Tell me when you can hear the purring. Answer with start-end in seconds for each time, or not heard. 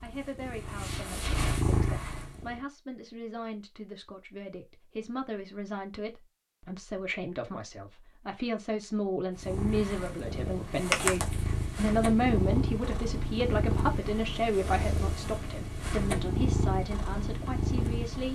0.0-2.6, 9.3-18.2.